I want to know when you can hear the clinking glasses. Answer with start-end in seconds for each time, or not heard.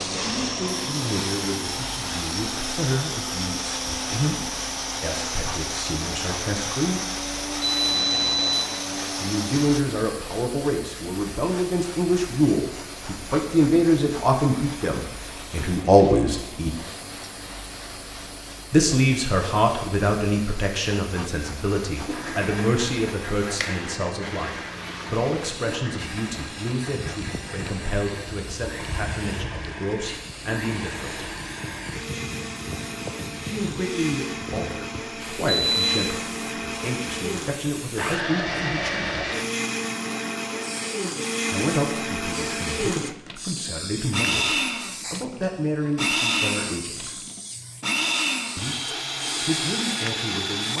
not heard.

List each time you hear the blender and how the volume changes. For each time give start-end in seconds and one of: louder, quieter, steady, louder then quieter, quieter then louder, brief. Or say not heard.
0.0-9.8 steady
21.9-50.7 louder.